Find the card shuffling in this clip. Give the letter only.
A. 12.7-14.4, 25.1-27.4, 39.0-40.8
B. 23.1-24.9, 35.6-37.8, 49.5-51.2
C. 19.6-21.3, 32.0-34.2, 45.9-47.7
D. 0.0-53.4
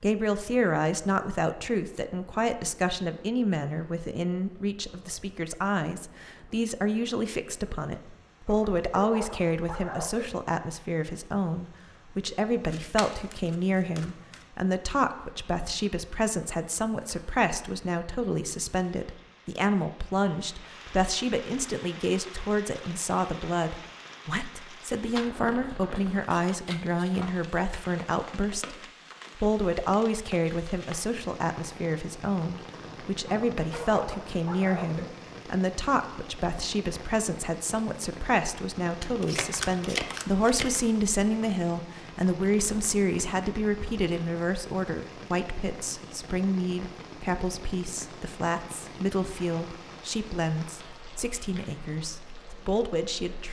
A.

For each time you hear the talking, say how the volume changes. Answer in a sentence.
The talking can be heard from 0.0 to 53.4 s, at a steady volume.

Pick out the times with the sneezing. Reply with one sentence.
The sneezing can't be heard in this clip.